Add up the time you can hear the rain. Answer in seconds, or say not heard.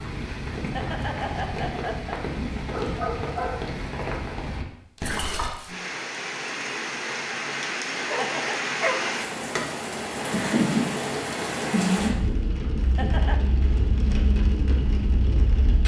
16 s.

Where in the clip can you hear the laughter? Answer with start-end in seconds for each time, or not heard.
0.6-2.2, 8.2-8.7, 12.8-13.4.